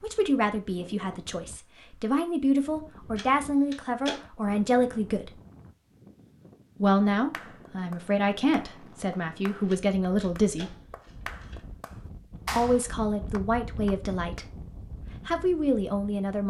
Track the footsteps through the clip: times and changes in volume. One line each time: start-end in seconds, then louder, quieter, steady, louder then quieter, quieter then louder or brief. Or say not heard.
not heard.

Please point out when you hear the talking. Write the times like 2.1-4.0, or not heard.
0.0-5.3, 6.8-10.7, 12.6-14.4, 15.2-16.4.